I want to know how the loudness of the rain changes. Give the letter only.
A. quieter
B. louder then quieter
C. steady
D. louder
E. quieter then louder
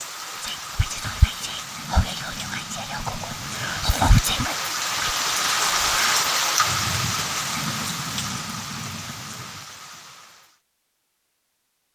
B.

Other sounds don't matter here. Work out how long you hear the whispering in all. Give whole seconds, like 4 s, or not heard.
6 s.